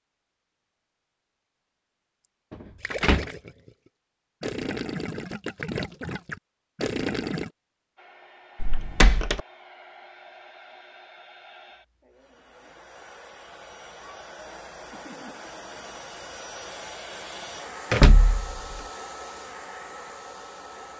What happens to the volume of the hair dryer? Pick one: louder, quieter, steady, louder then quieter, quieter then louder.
louder.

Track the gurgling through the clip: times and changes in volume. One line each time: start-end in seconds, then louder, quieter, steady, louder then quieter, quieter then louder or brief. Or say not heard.
2.8-7.5 louder.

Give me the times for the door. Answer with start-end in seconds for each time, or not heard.
2.5-3.3, 8.6-9.4, 17.9-18.8.